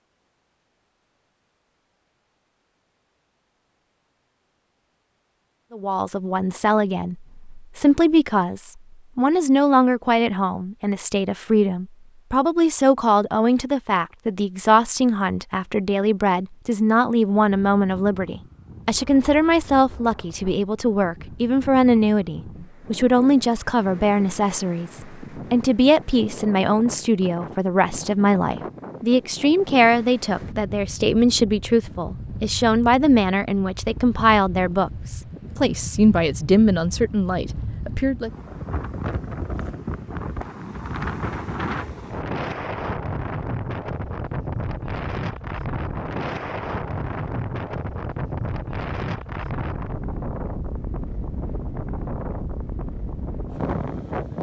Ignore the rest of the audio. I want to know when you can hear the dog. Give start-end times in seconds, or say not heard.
not heard.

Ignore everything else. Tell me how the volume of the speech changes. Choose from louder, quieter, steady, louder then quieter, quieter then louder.
steady.